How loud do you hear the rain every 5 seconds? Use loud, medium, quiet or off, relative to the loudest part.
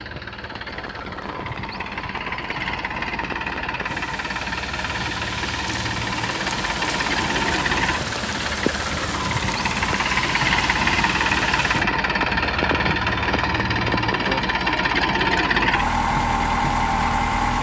medium, loud, loud, off.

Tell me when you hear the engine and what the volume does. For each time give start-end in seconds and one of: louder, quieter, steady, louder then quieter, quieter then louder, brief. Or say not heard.
0.0-17.5 louder.